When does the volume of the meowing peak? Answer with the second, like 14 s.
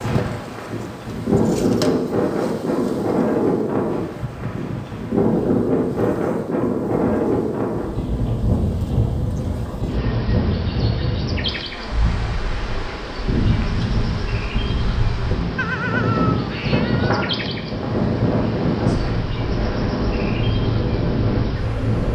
16 s.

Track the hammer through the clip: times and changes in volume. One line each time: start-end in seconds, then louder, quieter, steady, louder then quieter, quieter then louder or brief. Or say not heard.
not heard.